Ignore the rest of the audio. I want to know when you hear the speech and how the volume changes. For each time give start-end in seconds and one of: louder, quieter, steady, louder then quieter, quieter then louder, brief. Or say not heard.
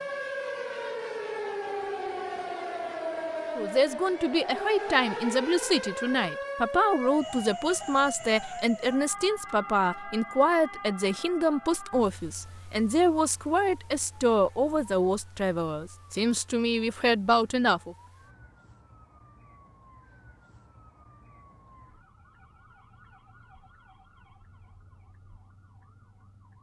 3.5-17.9 steady.